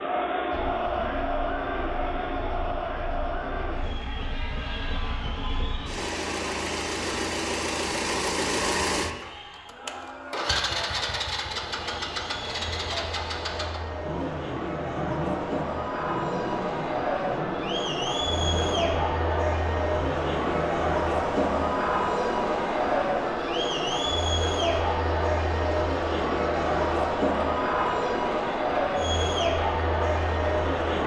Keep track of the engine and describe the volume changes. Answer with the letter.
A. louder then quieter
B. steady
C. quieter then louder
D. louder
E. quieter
A.